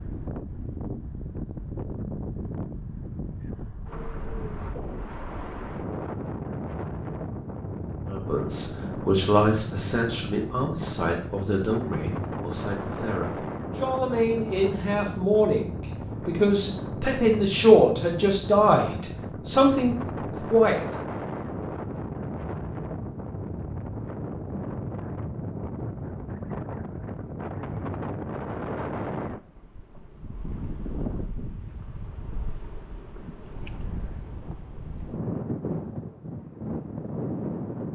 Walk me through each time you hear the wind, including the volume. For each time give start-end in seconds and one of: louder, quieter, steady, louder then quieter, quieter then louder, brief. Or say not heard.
0.0-37.8 steady.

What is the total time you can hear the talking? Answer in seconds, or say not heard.
13 s.